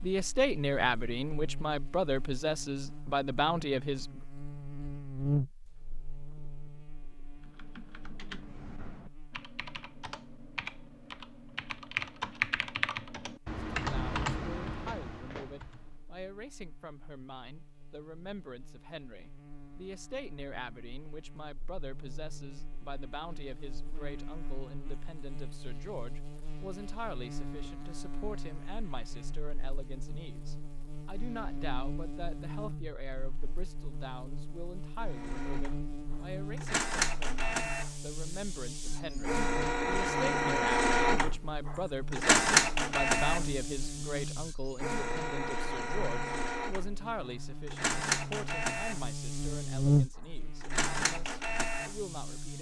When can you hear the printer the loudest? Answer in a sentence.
The volume of the printer peaks at 43 seconds.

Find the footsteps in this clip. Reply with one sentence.
The footsteps can't be heard in this clip.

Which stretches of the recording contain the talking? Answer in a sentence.
The talking can be heard from 0.0 to 4.2 s and from 13.8 to 52.5 s.